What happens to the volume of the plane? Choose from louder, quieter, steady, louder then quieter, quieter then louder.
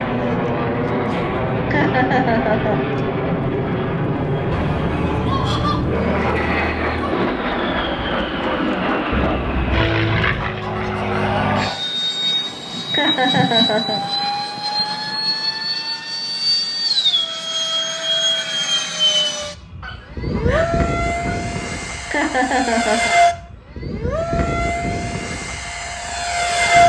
steady.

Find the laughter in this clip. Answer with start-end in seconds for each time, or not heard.
1.7-2.9, 12.9-14.0, 22.1-23.1.